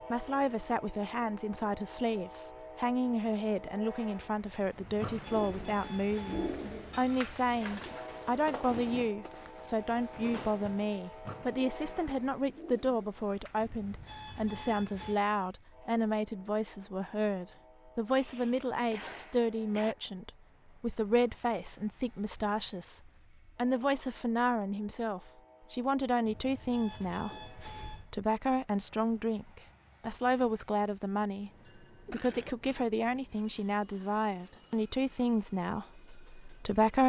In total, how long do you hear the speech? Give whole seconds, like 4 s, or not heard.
36 s.